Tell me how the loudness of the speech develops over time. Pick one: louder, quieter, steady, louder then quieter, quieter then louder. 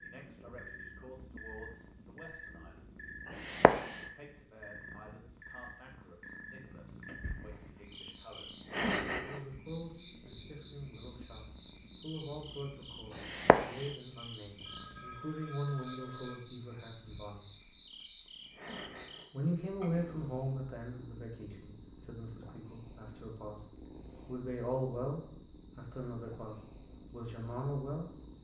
louder.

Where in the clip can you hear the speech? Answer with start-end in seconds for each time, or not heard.
0.0-3.0, 4.0-8.6, 9.2-17.7, 19.3-23.6, 24.2-28.1.